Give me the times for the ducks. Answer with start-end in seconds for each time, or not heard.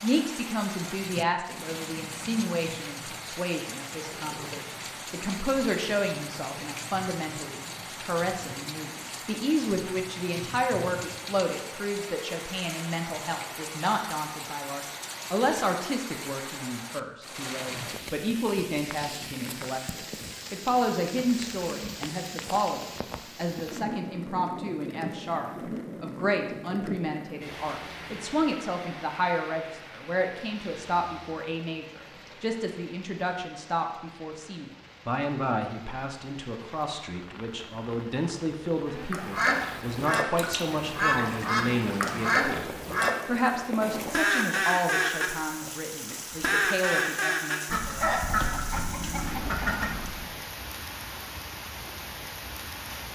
39.1-50.3.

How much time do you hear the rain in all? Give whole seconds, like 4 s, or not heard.
53 s.